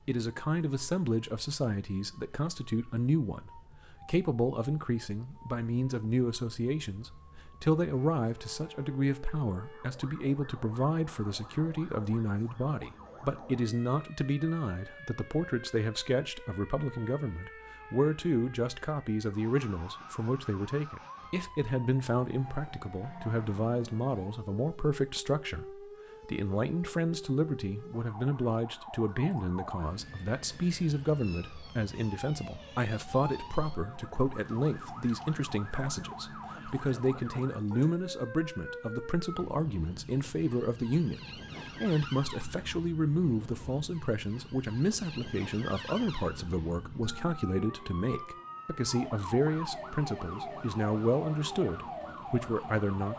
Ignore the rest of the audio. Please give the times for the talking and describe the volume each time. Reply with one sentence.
You can hear the talking from 0.1 to 53.1 s, at a steady volume.